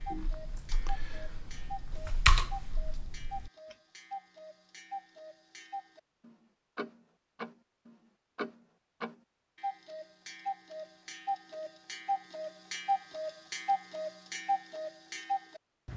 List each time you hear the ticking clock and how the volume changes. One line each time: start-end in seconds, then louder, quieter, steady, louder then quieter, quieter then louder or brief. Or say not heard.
0.0-15.9 louder.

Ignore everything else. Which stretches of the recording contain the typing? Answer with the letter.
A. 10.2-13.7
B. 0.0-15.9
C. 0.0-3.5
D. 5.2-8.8
C.